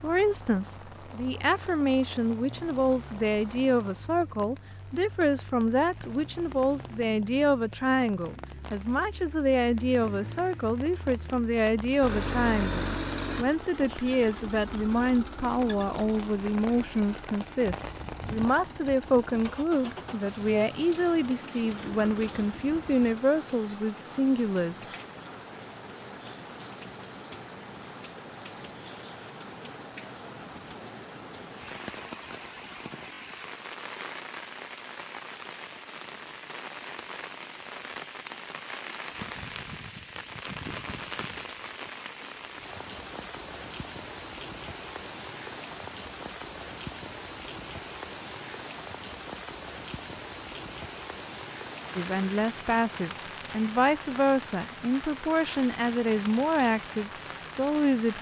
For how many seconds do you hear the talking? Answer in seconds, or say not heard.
31 s.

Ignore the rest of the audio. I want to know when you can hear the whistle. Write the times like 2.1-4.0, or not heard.
not heard.